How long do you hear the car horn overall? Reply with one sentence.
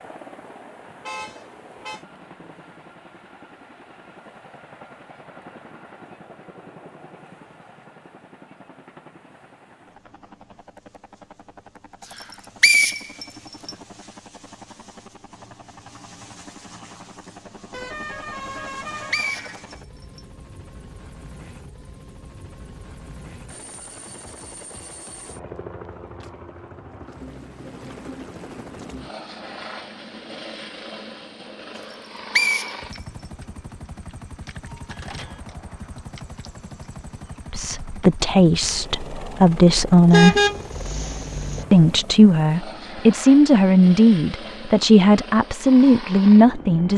You can hear the car horn for 4 seconds altogether.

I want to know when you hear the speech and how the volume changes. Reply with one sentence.
The speech can be heard briefly from 37.5 to 40.4 s; and from 41.7 to 46.9 s, at a steady volume.